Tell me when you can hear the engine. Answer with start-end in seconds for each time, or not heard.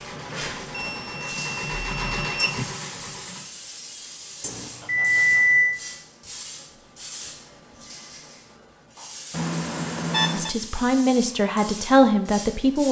0.0-3.5.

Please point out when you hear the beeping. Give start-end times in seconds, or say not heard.
0.8-2.7, 4.4-5.8, 9.3-10.5.